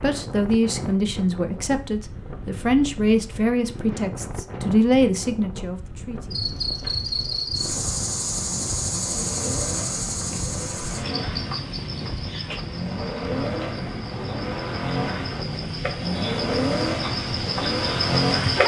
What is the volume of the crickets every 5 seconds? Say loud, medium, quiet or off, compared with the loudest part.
off, loud, medium, loud.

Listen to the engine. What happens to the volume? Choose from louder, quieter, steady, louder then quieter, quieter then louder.
louder.